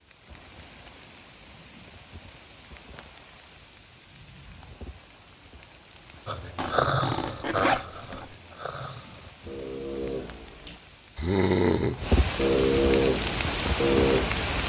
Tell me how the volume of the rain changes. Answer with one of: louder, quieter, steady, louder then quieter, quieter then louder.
louder.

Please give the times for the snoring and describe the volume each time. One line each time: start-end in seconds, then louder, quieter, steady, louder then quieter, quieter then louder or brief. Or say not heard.
6.2-14.6 quieter then louder.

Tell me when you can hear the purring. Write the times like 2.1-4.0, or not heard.
not heard.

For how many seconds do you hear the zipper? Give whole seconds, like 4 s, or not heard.
2 s.